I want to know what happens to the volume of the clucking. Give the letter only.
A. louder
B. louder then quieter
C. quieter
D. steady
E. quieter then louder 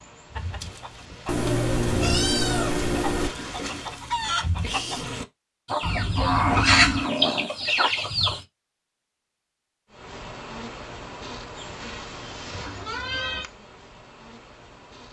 A.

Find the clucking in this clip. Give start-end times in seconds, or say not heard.
0.3-8.4.